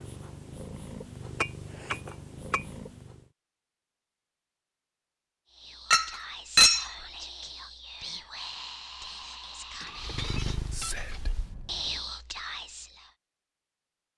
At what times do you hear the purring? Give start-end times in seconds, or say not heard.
0.0-3.3, 9.9-12.1.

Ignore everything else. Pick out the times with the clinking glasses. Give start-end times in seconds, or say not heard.
1.4-2.6, 5.9-6.9, 9.8-11.3.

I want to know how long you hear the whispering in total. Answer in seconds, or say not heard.
8 s.